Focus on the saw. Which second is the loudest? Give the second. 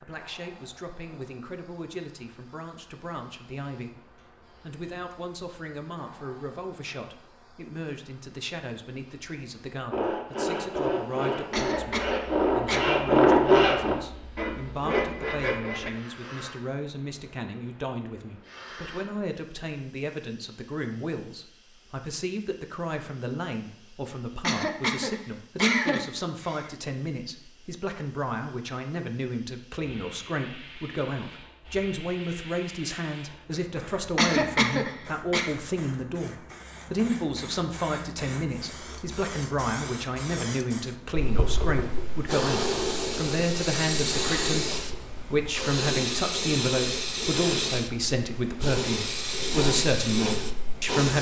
13 s.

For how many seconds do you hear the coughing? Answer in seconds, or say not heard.
5 s.